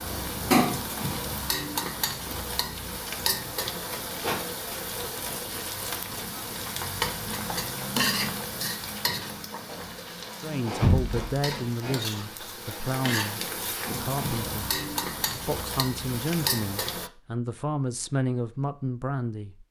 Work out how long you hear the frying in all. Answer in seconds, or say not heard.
17 s.